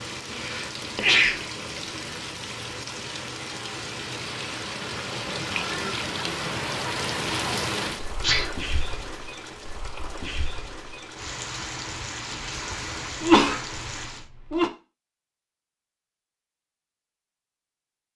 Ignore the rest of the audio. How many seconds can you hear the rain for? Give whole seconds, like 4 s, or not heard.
14 s.